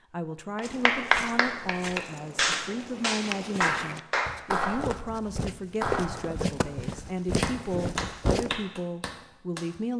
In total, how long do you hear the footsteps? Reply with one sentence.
The footsteps can be heard for 8 seconds in total.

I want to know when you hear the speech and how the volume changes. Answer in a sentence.
The speech can be heard from 0.1 to 9.9 s, at a steady volume.